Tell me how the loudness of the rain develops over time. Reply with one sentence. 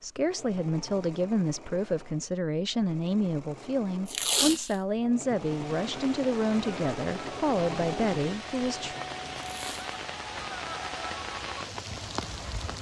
The volume of the rain goes up.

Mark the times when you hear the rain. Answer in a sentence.
You can hear the rain from 5.3 to 12.7 s.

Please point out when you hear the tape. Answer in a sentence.
You can hear the tape from 4.0 to 4.8 s and from 9.4 to 9.9 s.